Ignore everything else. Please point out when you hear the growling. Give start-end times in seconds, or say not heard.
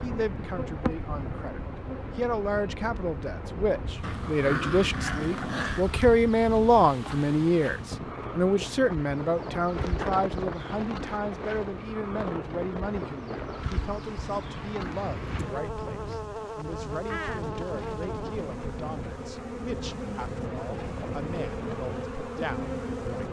4.0-5.9.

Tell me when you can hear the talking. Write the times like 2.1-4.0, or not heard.
0.0-23.2.